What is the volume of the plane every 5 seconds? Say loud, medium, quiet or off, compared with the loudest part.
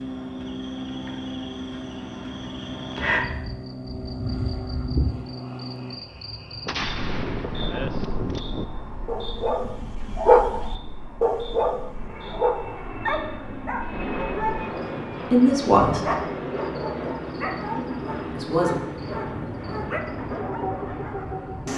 loud, medium, loud, loud, loud.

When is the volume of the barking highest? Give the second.
10 s.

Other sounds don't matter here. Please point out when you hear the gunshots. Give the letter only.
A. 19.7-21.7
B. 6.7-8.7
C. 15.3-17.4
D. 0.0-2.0
B.